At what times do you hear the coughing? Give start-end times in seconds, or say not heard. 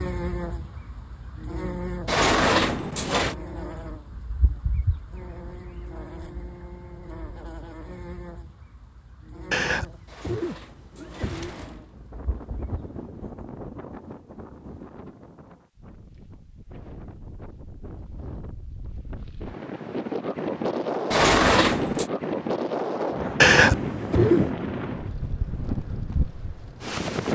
9.5-11.5, 23.4-24.4.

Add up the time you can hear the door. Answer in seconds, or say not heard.
4 s.